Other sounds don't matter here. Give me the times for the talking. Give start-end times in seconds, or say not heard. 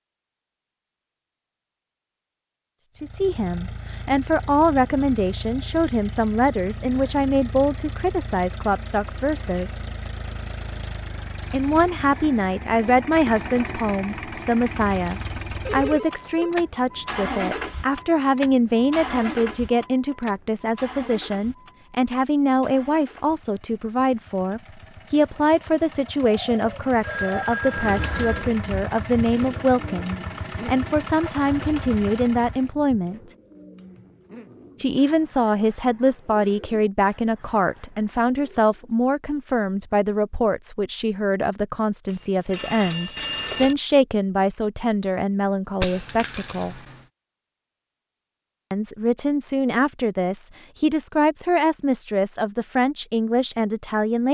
3.0-9.8, 11.5-33.4, 34.8-46.8, 48.7-54.2.